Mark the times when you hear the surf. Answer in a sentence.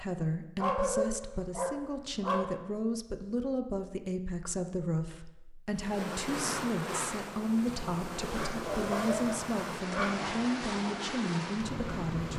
The surf can be heard from 5.7 to 12.3 s.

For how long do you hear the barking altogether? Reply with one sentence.
You can hear the barking for 4 seconds altogether.